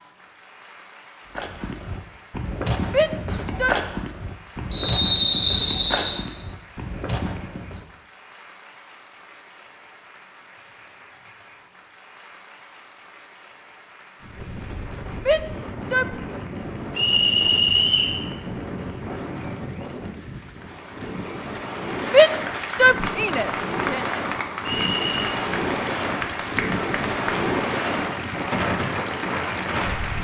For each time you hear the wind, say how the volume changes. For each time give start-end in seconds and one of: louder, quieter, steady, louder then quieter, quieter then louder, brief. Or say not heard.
14.2-30.1 louder.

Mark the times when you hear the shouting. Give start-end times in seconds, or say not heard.
2.9-3.8, 15.2-16.1, 22.1-24.0.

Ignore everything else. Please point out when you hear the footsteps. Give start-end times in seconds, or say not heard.
1.4-7.8.